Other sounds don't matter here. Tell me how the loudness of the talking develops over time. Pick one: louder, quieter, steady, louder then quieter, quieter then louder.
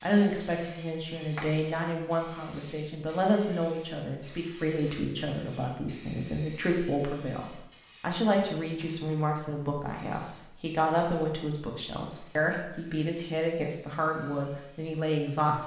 steady.